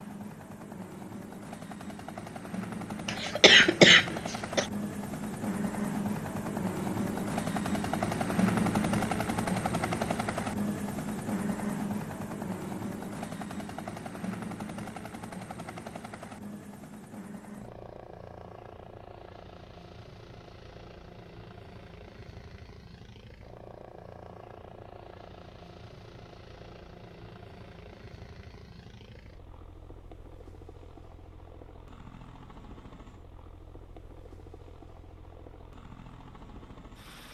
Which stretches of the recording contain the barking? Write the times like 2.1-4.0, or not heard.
not heard.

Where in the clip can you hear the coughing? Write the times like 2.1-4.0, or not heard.
3.0-4.7.